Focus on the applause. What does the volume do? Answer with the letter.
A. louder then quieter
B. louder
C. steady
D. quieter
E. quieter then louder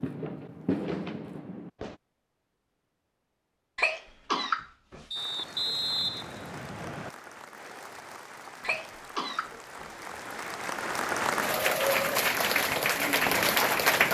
B.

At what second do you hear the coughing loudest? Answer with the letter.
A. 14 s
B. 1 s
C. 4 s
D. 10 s
C.